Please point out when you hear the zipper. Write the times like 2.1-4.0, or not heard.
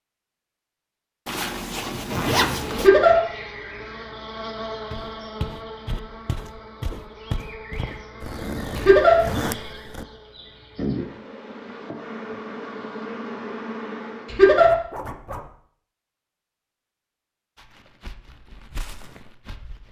1.2-2.9, 8.2-10.1, 14.6-15.5.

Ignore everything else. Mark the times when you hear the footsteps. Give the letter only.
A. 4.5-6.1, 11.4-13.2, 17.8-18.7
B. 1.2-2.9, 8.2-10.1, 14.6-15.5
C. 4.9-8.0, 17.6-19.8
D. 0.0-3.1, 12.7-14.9
C.